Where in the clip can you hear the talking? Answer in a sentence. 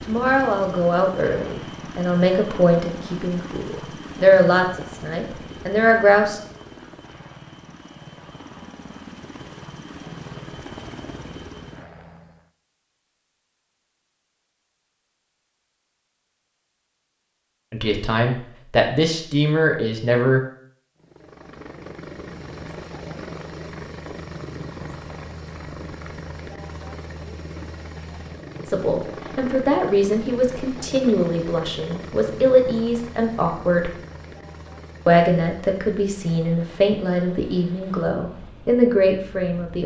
You can hear the talking from 0.1 to 6.4 s, from 17.7 to 20.4 s, from 28.6 to 33.9 s and from 35.0 to 39.8 s.